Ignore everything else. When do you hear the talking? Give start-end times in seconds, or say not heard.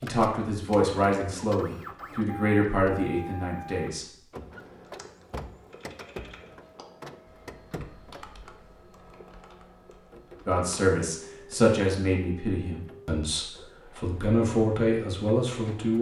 0.0-4.2, 10.4-15.9.